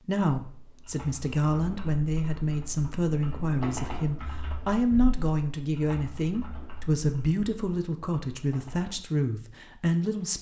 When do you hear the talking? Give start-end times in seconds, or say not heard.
0.0-10.3.